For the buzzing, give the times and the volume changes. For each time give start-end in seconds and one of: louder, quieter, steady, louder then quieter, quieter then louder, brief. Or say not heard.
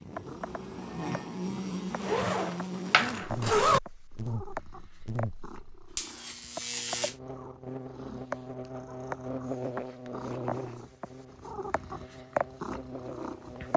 0.0-13.7 quieter.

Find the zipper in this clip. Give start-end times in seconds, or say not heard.
2.0-3.8.